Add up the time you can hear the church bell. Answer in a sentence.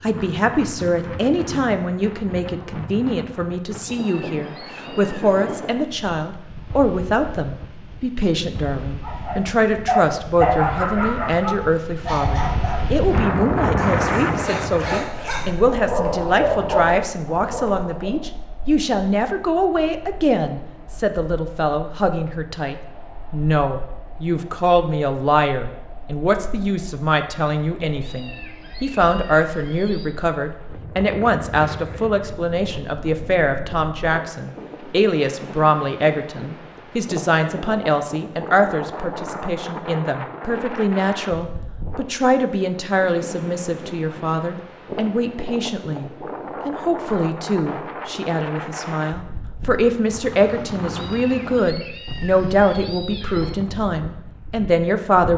You can't hear the church bell here.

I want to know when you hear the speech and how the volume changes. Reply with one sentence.
The speech can be heard from 0.0 to 55.3 s, at a steady volume.